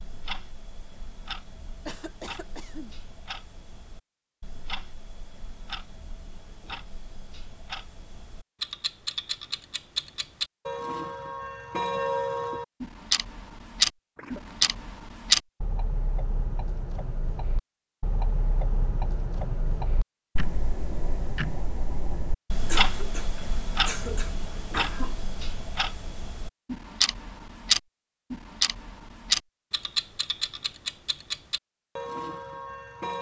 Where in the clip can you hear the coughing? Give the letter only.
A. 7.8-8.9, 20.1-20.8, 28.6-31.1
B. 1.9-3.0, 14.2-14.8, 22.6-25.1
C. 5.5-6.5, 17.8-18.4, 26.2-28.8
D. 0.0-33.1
B.